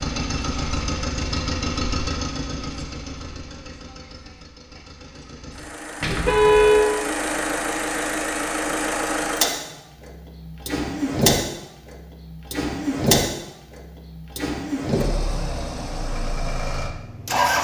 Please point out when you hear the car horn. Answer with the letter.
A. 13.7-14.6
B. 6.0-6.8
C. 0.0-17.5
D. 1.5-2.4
B.